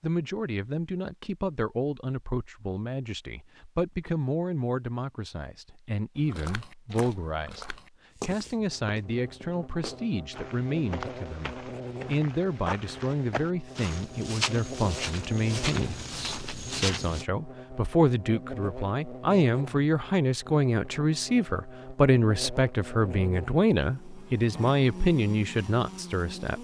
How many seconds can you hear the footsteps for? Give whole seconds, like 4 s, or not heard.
11 s.